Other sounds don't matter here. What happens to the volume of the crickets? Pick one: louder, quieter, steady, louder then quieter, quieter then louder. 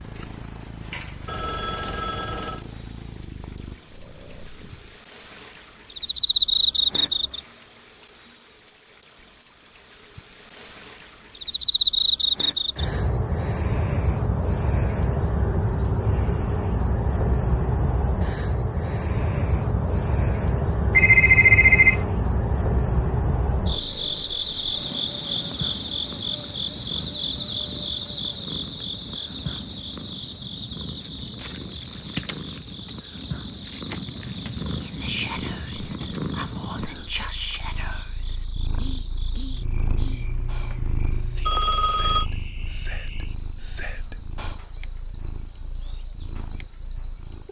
quieter.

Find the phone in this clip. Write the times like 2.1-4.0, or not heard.
1.2-2.6, 20.9-22.1, 41.5-42.2.